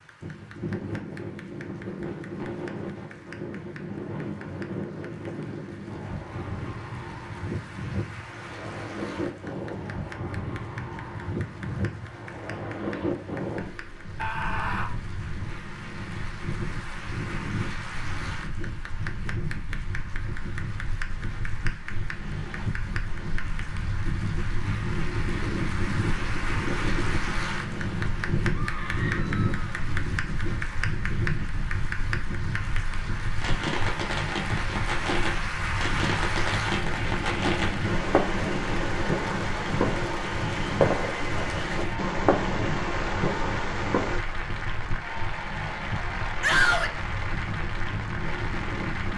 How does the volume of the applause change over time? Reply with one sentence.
The loudness of the applause goes up.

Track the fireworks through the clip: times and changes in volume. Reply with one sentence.
You can hear the fireworks from 33.4 to 44.2 s, at a steady volume.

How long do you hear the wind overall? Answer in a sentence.
You can hear the wind for 49 seconds altogether.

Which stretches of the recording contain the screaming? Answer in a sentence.
The screaming can be heard from 14.2 to 14.9 s, from 28.5 to 29.5 s and from 46.4 to 47.0 s.